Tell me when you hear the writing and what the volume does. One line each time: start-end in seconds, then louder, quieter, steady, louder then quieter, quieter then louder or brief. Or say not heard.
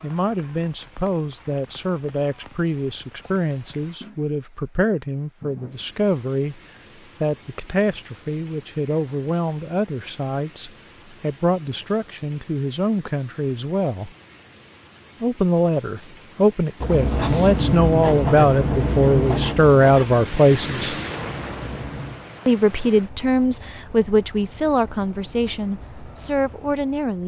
16.8-22.2 quieter.